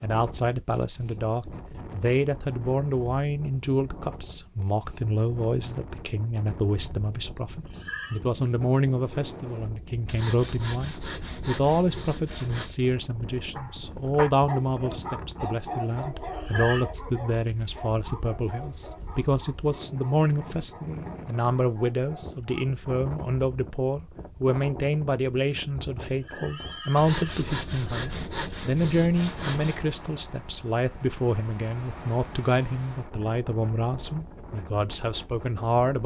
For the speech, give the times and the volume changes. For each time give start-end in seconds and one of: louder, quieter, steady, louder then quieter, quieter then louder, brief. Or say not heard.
0.0-36.0 steady.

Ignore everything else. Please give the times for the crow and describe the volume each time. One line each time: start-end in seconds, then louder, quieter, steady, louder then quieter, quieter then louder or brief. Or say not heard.
not heard.